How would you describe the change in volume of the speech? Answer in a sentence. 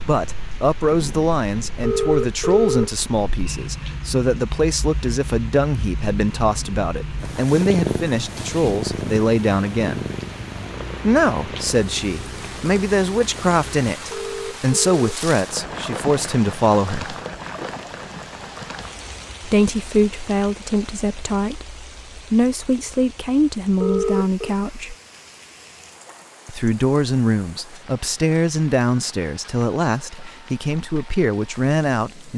The volume of the speech stays about the same.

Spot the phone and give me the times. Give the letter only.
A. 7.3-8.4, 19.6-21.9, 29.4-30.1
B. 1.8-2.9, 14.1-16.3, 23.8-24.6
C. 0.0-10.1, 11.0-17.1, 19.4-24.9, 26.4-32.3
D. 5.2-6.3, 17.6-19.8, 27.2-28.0
B.